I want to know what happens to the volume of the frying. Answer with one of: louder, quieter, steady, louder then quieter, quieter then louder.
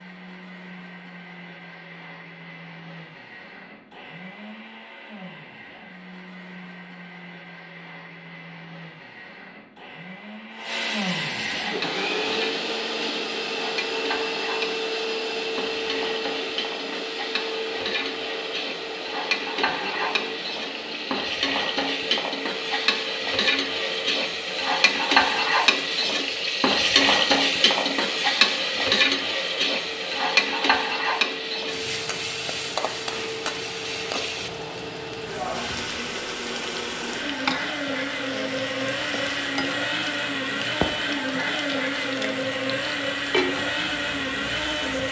louder then quieter.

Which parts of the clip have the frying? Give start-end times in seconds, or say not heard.
11.6-45.0.